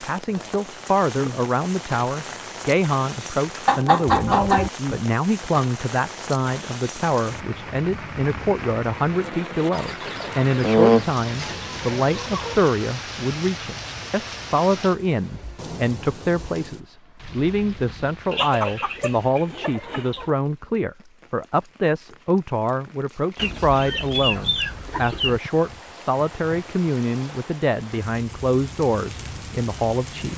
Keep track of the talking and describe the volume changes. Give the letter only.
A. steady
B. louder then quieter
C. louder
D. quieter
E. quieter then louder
A.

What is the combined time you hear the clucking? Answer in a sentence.
The clucking can be heard for 8 seconds in total.